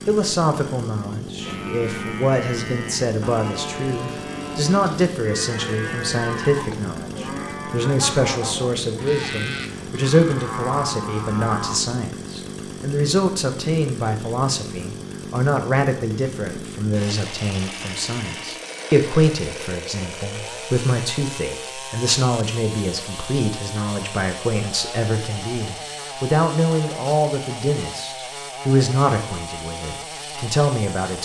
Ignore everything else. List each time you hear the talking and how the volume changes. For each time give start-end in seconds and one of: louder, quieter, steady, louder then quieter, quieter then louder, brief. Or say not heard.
0.1-31.2 steady.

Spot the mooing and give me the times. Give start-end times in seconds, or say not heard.
1.4-11.9.